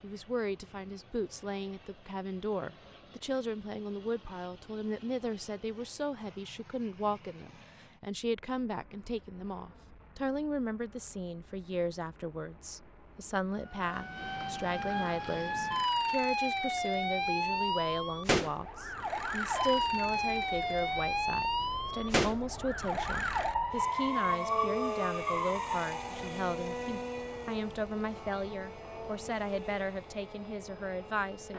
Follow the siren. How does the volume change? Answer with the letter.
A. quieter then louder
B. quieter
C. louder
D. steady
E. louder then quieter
D.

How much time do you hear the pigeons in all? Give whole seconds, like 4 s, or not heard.
not heard.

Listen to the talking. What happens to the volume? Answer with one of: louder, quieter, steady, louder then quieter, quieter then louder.
steady.